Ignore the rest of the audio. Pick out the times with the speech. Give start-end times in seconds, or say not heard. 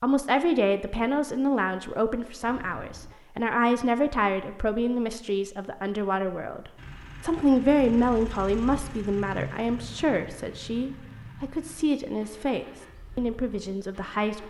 0.0-14.4.